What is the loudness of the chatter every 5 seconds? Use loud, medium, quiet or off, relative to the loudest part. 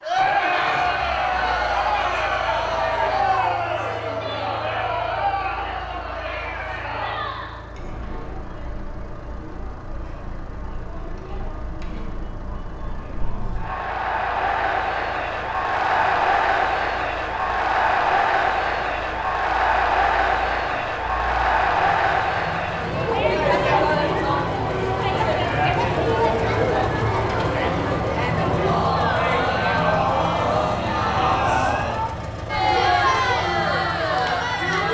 loud, medium, medium, loud, loud, loud, loud.